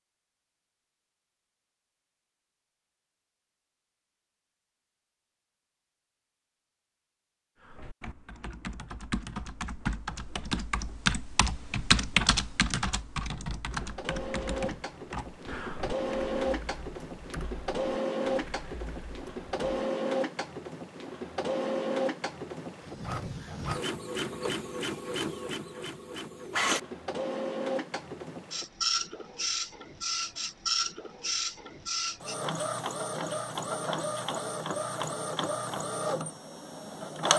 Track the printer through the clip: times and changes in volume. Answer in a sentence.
You can hear the printer from 13.7 to 37.3 s, at a steady volume.